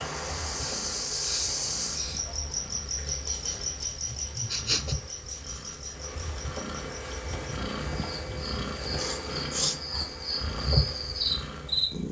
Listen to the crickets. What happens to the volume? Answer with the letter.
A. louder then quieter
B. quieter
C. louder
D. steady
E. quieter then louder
E.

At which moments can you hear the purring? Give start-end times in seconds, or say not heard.
0.0-12.0.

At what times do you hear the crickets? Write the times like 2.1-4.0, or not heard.
0.0-12.0.